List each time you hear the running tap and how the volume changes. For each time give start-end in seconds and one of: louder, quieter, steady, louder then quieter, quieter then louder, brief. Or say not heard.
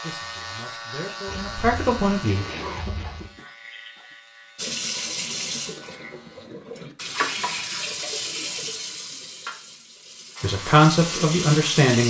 4.5-12.0 quieter then louder.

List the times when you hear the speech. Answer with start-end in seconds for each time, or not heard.
0.0-2.5, 10.4-12.0.